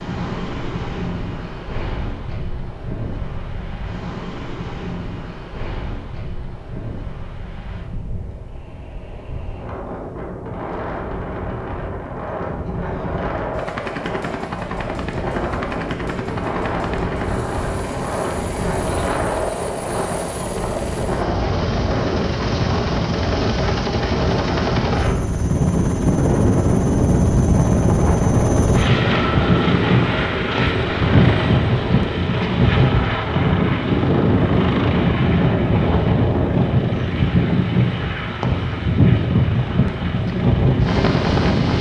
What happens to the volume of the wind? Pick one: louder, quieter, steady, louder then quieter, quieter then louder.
louder.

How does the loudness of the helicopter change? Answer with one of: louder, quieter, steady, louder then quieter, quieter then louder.
louder then quieter.